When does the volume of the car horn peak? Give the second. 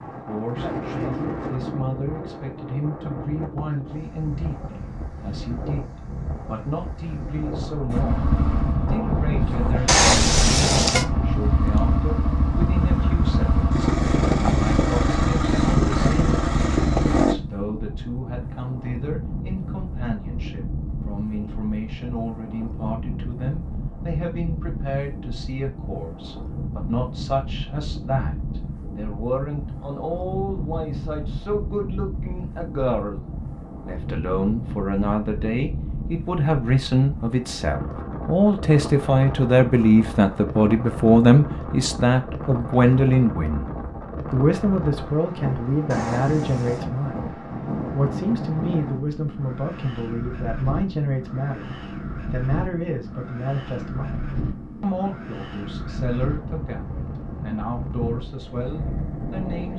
10 s.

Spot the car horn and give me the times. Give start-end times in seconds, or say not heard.
9.8-11.1, 45.9-46.9.